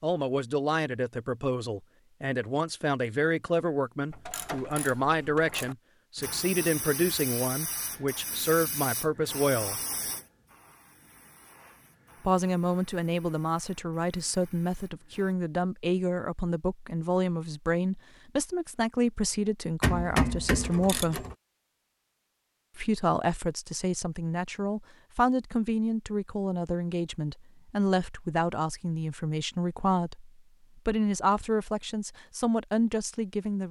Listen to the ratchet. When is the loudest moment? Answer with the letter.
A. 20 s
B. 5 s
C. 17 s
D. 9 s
A.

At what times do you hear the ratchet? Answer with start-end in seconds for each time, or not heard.
4.1-5.8, 19.8-21.4.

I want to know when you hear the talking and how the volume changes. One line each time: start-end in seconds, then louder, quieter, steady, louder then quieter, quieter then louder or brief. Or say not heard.
0.0-9.8 steady
12.2-21.2 steady
22.8-33.6 steady.